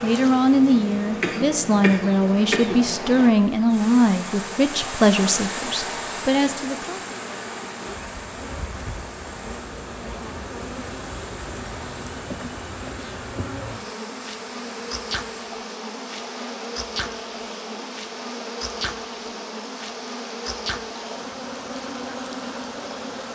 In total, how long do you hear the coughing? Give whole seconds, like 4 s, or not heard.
2 s.